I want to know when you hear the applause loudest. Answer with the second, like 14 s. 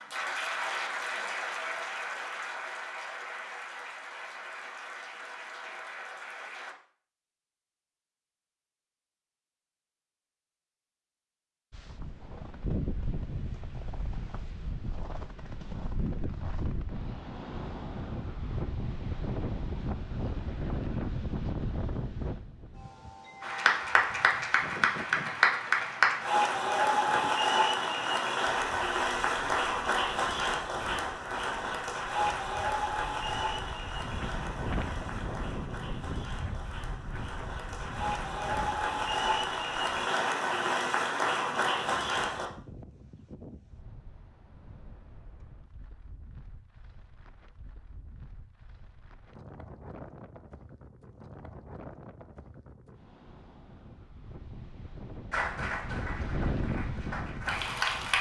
26 s.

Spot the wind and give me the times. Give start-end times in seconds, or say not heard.
11.7-58.1.